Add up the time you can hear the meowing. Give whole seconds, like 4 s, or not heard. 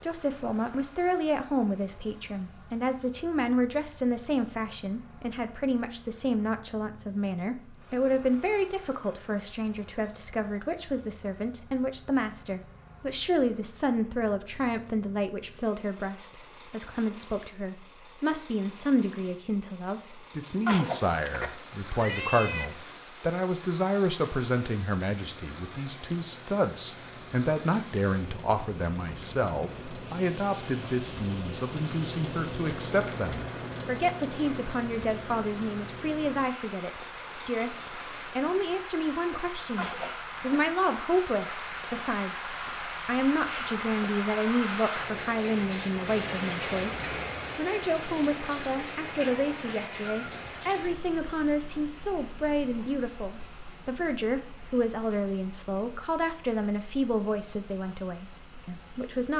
3 s.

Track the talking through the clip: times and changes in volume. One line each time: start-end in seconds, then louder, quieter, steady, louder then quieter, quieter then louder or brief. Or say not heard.
0.0-59.3 steady.